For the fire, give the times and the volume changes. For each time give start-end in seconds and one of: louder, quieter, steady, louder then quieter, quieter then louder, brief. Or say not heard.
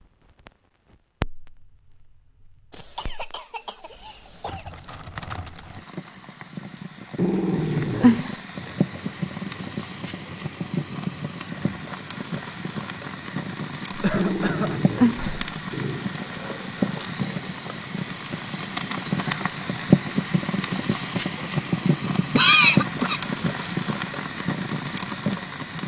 0.0-25.8 louder.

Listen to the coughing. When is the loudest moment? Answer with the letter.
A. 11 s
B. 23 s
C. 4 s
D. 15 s
B.